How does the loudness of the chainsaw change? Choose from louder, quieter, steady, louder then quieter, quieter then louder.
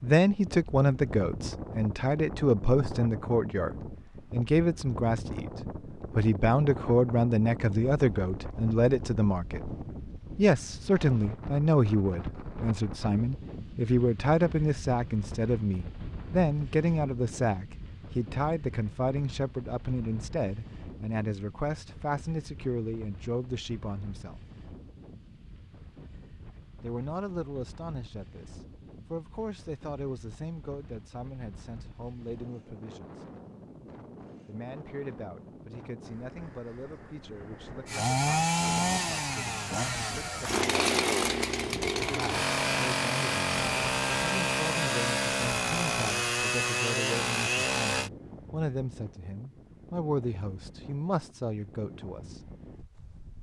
steady.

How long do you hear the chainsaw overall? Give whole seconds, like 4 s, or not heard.
10 s.